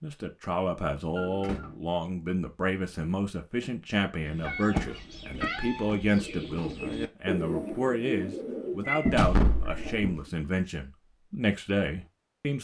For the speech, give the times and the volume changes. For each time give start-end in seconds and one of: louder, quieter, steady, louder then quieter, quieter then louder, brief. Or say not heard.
0.0-12.5 steady.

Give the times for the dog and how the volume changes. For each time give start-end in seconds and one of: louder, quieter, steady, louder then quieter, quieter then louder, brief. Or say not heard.
not heard.